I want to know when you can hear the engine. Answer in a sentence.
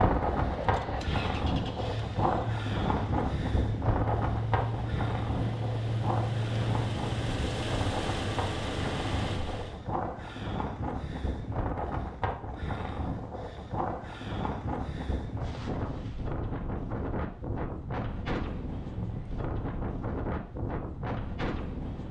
You can hear the engine from 0.0 to 9.8 s.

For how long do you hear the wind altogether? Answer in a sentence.
You can hear the wind for 22 seconds altogether.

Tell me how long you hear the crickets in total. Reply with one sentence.
The crickets can't be heard in this clip.